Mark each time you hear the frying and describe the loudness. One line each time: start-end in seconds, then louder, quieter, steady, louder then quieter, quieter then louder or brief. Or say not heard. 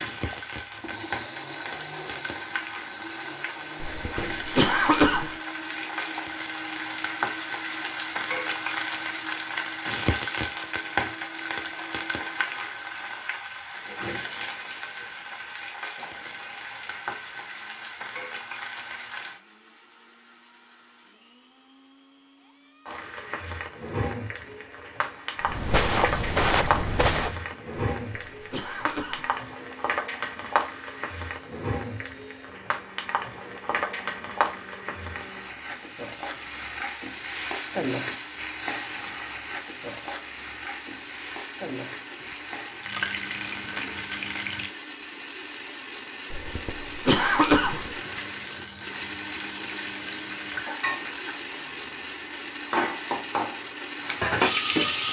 0.0-19.4 louder then quieter
22.9-44.8 steady
47.8-55.0 louder.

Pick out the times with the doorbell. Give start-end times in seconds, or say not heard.
not heard.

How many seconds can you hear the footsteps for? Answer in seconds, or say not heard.
2 s.